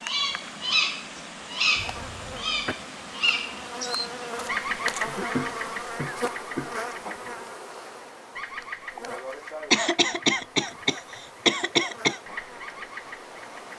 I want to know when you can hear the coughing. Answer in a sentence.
The coughing can be heard from 1.8 to 2.8 s, from 5.0 to 6.7 s and from 9.7 to 12.2 s.